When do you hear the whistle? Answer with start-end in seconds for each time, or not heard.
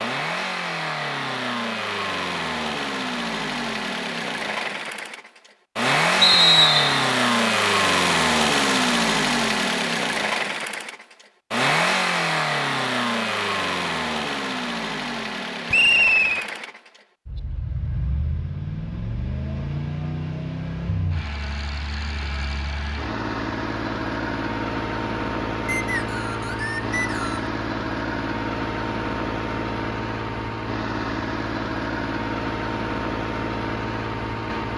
6.2-6.9, 15.7-16.4, 25.6-27.4.